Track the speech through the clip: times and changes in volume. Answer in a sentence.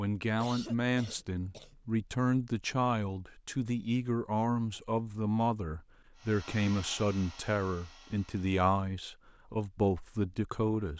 The speech can be heard from 0.0 to 10.9 s, at a steady volume.